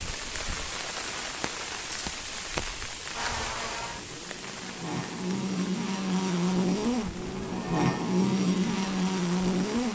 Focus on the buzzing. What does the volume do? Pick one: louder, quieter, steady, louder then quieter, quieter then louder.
louder.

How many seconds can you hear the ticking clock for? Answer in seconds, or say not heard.
not heard.